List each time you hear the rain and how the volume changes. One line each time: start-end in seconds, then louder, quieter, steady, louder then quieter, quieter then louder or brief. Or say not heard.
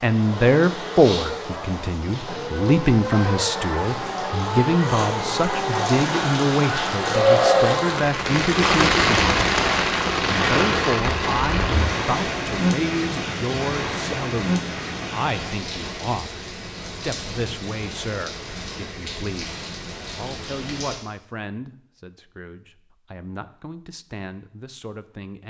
0.0-20.9 louder then quieter.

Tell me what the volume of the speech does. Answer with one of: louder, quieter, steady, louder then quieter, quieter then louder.
quieter.